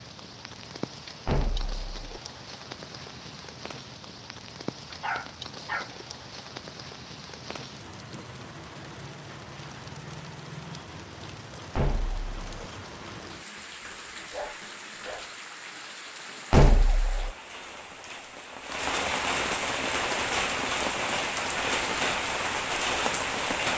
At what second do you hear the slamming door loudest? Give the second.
17 s.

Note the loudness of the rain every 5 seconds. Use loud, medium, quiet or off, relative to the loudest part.
quiet, quiet, quiet, medium, loud.